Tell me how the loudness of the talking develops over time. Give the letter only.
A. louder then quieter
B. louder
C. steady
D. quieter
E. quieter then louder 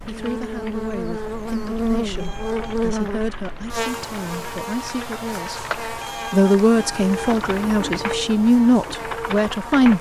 B.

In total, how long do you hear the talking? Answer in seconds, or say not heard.
9 s.